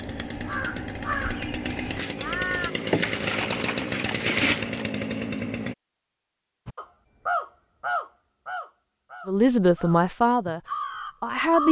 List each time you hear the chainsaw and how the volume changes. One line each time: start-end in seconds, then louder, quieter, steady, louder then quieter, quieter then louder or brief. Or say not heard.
0.0-5.8 louder.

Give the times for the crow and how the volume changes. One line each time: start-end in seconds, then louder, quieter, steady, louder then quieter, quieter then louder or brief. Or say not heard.
0.0-2.7 brief
6.7-11.6 quieter then louder.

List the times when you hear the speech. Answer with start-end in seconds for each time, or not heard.
9.2-11.6.